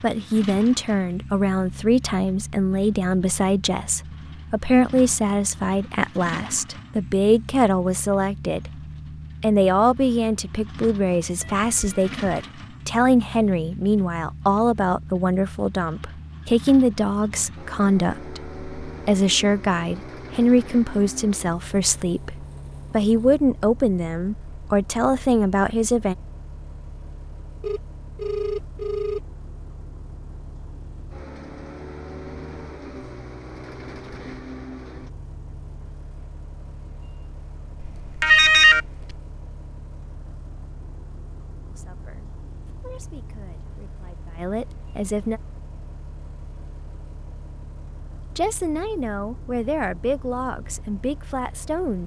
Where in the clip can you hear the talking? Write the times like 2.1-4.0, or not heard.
0.0-8.7, 9.4-26.1, 41.6-45.4, 48.4-52.0.